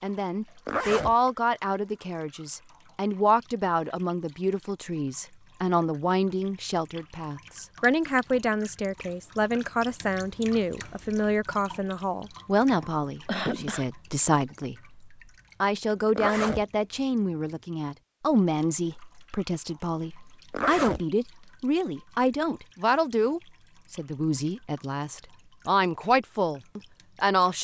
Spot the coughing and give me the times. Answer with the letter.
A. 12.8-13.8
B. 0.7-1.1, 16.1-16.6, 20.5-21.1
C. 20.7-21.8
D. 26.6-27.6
A.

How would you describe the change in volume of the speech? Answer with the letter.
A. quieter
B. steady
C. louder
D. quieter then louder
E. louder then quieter
B.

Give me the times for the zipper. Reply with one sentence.
You can hear the zipper from 0.7 to 1.1 s, from 16.1 to 16.6 s and from 20.5 to 21.1 s.